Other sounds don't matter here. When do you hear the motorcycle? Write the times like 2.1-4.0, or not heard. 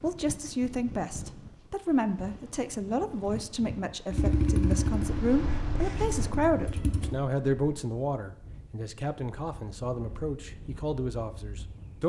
4.1-7.2.